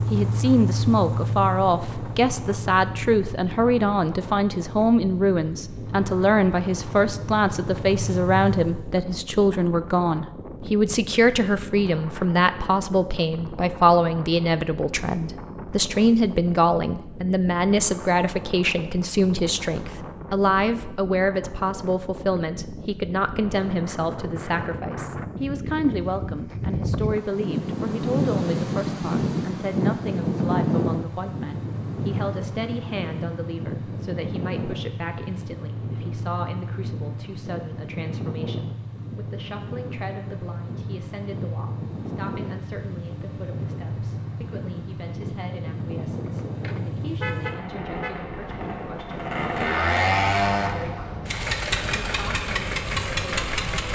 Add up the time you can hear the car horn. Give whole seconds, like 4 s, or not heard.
2 s.